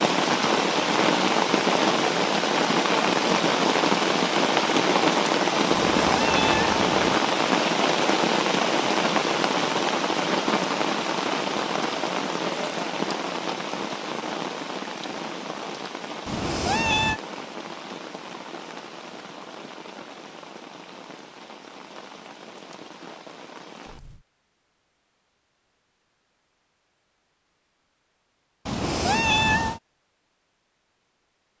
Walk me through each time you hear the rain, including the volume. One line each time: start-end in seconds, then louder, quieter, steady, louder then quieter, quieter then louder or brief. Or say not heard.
0.0-24.2 quieter.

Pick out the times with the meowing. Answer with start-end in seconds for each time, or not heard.
5.7-7.1, 16.2-17.2, 28.6-29.8.